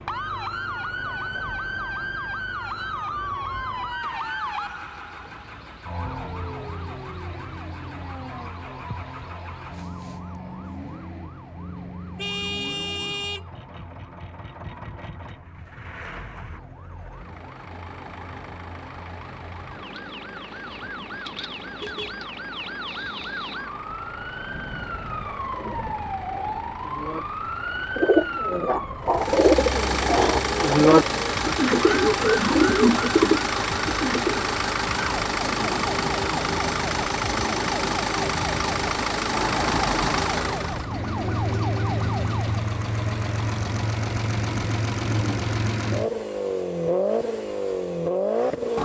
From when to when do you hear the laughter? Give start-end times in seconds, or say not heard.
not heard.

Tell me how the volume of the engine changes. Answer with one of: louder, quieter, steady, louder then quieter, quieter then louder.
louder.